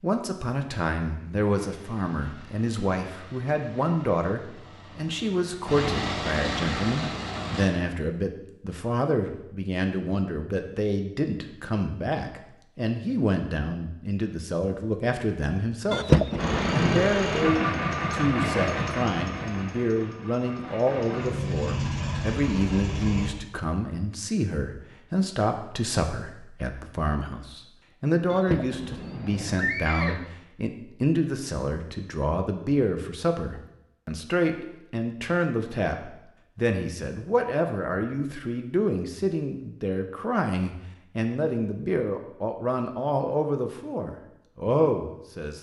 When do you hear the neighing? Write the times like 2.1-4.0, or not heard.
15.9-17.1, 28.3-30.3.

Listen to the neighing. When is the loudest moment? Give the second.
16 s.